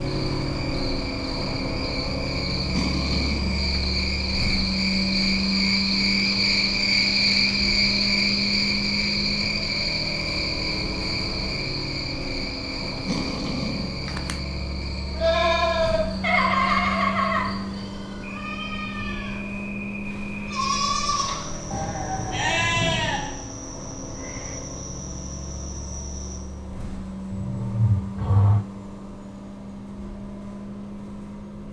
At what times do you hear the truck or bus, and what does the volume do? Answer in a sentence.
You can hear the truck or bus from 0.0 to 31.6 s, getting quieter.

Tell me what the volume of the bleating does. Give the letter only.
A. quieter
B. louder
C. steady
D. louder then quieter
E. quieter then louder
E.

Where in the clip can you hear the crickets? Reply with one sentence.
The crickets can be heard from 0.0 to 26.4 s.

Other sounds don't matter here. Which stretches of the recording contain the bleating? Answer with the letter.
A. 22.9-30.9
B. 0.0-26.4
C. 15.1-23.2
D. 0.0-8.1
C.